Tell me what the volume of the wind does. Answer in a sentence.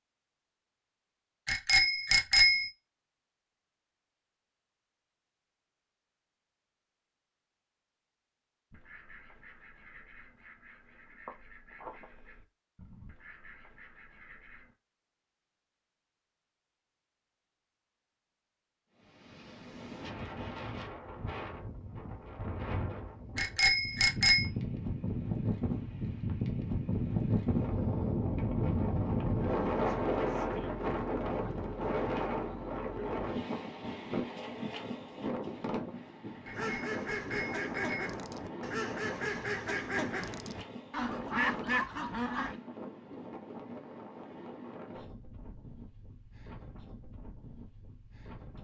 The loudness of the wind goes up, then down.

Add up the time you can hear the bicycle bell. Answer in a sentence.
You can hear the bicycle bell for 4 seconds altogether.